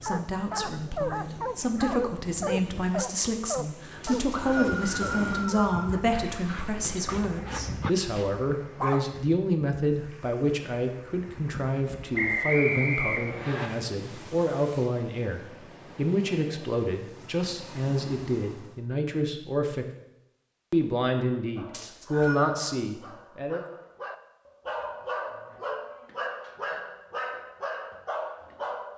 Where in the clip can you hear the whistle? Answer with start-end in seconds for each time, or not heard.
4.0-5.9, 12.2-13.7, 21.7-22.6.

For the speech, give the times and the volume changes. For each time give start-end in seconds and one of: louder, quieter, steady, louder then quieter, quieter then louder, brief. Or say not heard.
0.0-19.9 steady
20.7-23.6 brief.